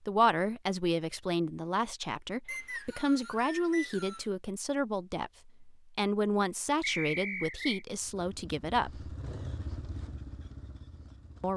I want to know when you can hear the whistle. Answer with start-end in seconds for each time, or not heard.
2.5-4.2, 6.8-7.8.